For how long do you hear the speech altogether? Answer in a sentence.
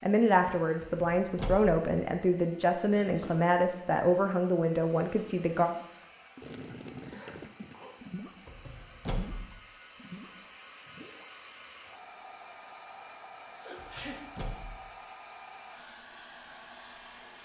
You can hear the speech for 6 seconds altogether.